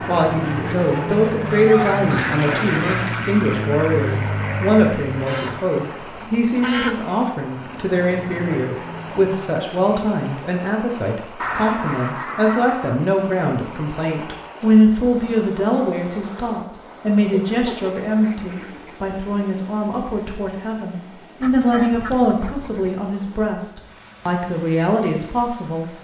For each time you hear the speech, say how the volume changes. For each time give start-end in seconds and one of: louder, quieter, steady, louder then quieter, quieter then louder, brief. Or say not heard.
0.1-25.9 steady.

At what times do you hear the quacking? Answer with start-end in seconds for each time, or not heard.
1.5-3.1, 5.2-7.2, 11.4-13.0, 17.3-19.0, 21.4-22.9.